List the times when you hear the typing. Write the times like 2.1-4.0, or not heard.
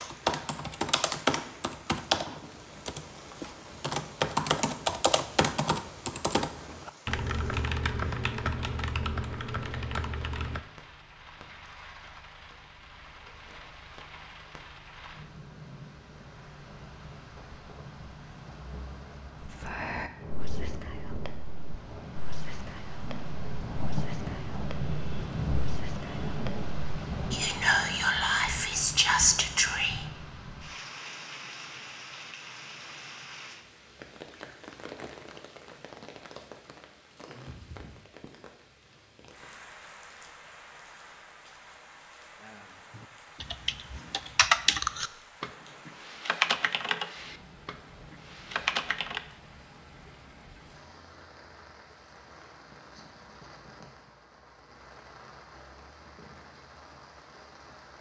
0.0-10.6, 43.0-49.2.